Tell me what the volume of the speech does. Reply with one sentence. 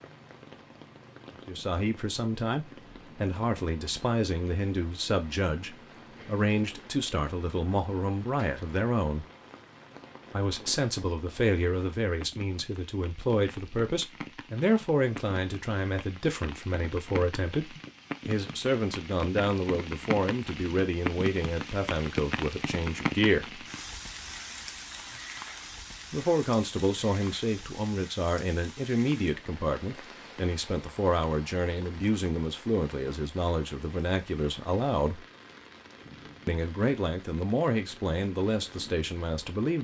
The loudness of the speech stays about the same.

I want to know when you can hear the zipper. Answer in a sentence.
You can't hear the zipper here.